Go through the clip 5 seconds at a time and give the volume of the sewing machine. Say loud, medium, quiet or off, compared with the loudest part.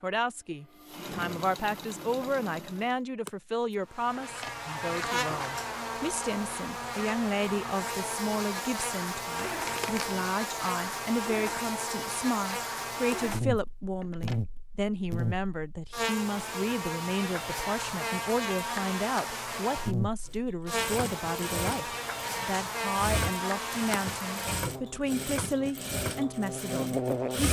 medium, off, off, off, loud, loud.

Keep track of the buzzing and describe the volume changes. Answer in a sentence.
The volume of the buzzing stays about the same.